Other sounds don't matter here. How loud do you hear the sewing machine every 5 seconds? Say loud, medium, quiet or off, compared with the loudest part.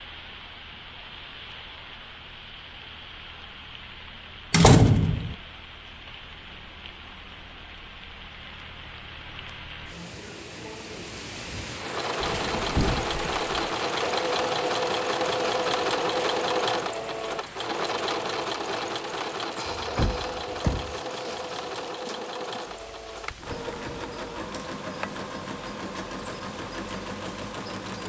off, off, loud, loud, medium, medium.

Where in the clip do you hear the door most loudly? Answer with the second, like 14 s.
5 s.